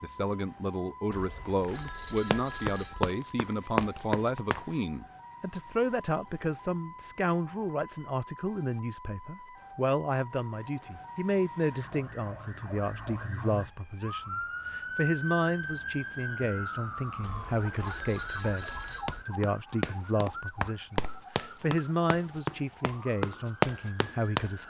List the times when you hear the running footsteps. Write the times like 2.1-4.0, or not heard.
2.1-4.7, 19.1-24.6.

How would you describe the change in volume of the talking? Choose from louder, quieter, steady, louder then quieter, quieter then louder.
steady.